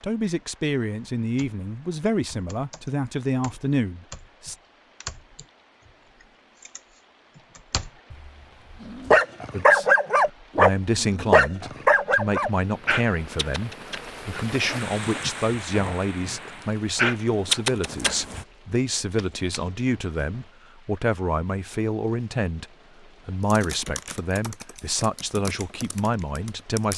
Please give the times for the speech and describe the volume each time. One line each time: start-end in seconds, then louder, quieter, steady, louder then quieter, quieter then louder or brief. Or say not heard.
0.0-4.5 steady
9.5-26.9 steady.